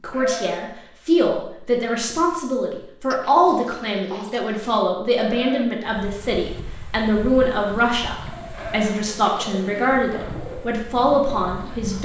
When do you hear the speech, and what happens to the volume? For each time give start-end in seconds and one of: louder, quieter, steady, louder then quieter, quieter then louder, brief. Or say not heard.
0.0-12.0 steady.